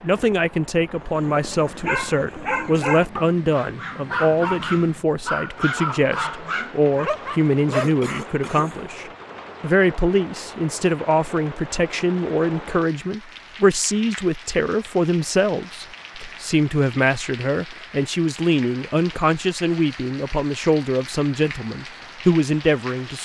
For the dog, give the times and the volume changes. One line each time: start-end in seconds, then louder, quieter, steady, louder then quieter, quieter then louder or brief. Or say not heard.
1.1-8.0 steady.